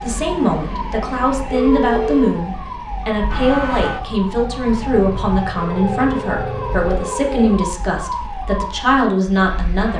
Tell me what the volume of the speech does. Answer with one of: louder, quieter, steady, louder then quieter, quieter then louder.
steady.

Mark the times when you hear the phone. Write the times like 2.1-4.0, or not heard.
1.5-2.3, 5.5-7.7.